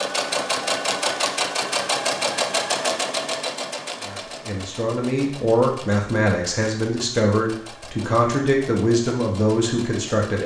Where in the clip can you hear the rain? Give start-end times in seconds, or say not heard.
not heard.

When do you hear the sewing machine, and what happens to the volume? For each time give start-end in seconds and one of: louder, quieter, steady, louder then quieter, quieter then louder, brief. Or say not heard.
0.0-10.4 quieter.